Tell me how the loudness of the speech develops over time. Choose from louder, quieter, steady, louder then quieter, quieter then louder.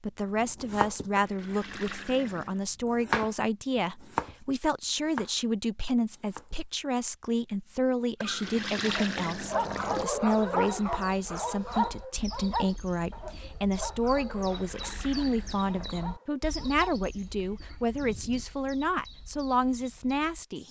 steady.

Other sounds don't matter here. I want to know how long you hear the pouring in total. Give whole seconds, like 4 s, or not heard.
5 s.